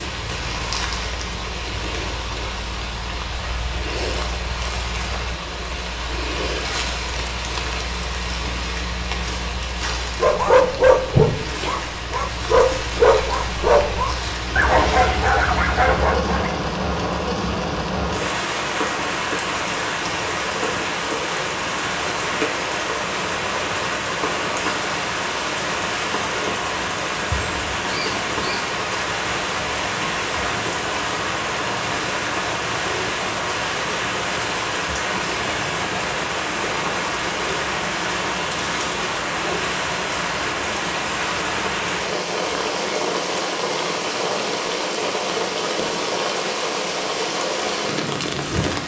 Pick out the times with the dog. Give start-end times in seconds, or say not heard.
10.2-16.5.